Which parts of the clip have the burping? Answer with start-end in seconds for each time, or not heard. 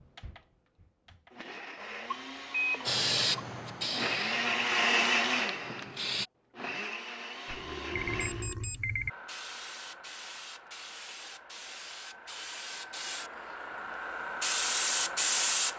7.5-8.7.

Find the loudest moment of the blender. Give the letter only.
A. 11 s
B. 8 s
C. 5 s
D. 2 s
C.